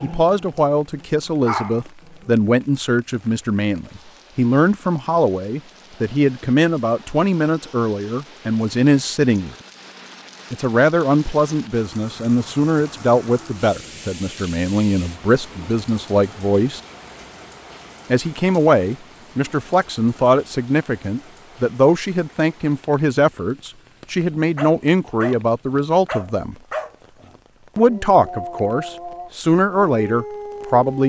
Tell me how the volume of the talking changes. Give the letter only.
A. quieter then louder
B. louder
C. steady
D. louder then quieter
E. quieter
C.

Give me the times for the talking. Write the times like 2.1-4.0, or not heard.
0.0-9.6, 10.5-16.8, 18.1-26.6, 27.8-31.0.